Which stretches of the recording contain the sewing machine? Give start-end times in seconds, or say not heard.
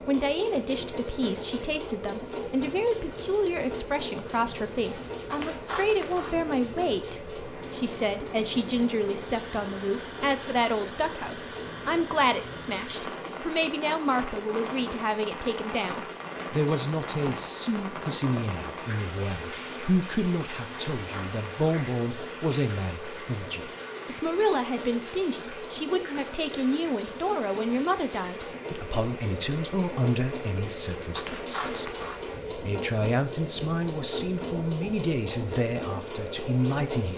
0.0-37.1.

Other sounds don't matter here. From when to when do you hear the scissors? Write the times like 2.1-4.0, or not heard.
5.3-6.5, 20.9-21.8, 31.1-32.4.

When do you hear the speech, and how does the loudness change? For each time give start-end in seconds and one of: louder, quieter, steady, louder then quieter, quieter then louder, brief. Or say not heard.
0.1-37.1 steady.